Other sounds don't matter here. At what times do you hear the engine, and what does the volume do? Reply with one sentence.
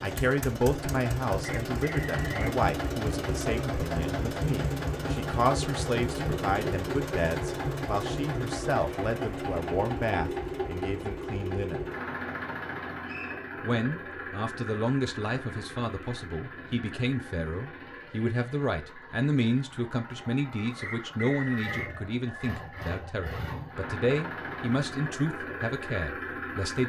You can hear the engine from 0.0 to 26.8 s, getting quieter then louder.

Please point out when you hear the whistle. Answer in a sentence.
The whistle can be heard from 1.6 to 2.5 s, from 13.1 to 13.5 s and from 20.8 to 21.9 s.